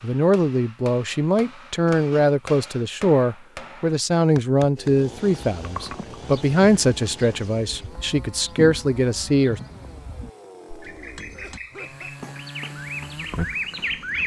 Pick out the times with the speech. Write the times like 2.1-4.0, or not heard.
0.0-9.6.